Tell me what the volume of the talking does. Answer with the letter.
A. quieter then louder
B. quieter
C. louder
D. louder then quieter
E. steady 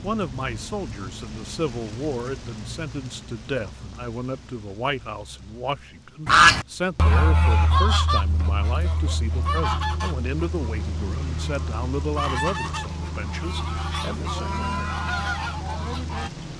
E.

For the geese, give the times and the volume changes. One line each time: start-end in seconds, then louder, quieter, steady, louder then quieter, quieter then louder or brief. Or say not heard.
6.2-16.3 quieter then louder.